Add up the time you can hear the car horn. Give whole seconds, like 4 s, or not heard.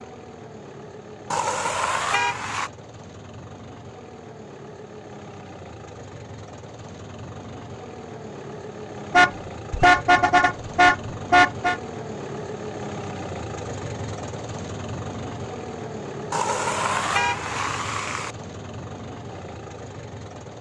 6 s.